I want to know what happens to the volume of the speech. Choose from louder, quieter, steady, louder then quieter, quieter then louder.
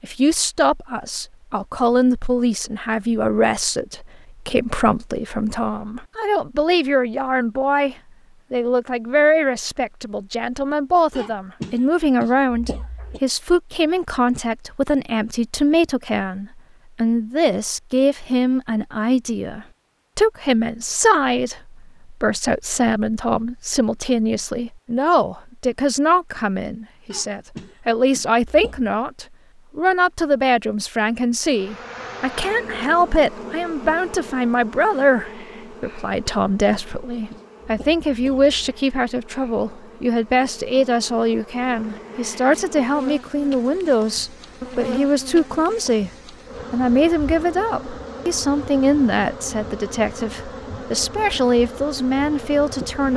steady.